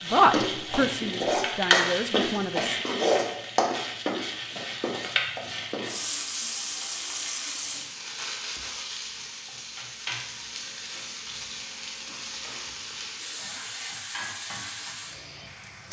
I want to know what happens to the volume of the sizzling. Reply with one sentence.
The loudness of the sizzling goes down.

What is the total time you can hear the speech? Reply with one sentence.
You can hear the speech for 3 seconds altogether.